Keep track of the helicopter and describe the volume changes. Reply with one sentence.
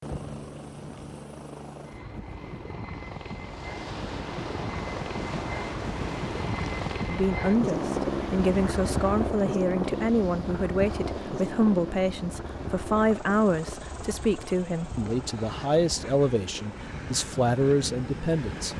The volume of the helicopter goes up, then down.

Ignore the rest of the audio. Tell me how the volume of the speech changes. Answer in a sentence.
The loudness of the speech stays about the same.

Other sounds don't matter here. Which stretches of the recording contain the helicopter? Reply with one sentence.
The helicopter can be heard from 0.0 to 18.7 s.